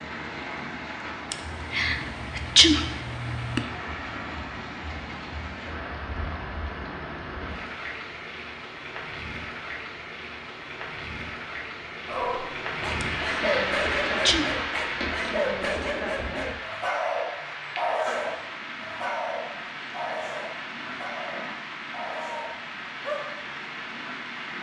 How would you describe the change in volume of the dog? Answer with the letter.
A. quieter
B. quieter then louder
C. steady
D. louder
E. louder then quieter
A.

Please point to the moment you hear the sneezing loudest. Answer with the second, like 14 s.
3 s.